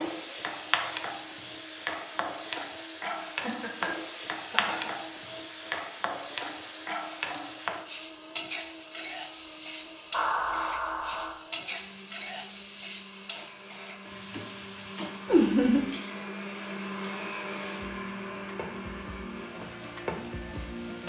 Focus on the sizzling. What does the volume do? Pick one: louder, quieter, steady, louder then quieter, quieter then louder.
quieter.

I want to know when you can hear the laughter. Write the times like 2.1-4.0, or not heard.
3.4-4.9, 10.1-11.3, 15.2-15.9.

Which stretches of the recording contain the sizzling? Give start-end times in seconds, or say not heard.
0.0-21.0.